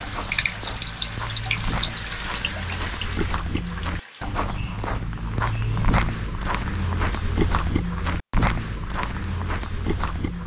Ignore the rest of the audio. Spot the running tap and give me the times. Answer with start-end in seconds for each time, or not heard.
0.0-4.4.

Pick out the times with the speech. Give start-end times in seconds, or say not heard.
not heard.